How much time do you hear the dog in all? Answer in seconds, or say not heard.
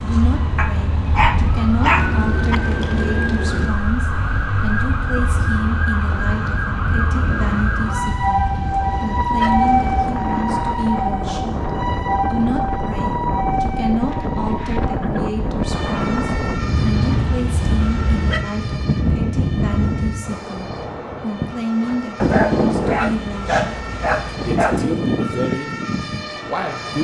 8 s.